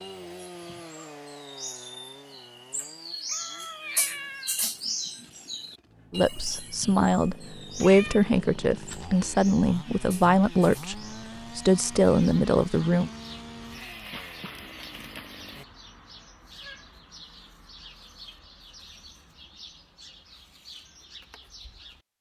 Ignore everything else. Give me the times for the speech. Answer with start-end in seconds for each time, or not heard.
6.1-13.1.